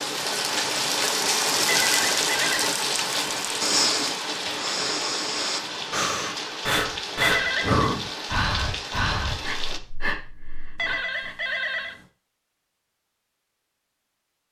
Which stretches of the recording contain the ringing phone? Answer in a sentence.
The ringing phone can be heard from 1.6 to 2.7 s, from 7.2 to 7.9 s and from 10.8 to 11.9 s.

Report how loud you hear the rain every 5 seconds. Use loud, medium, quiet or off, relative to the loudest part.
loud, medium, off.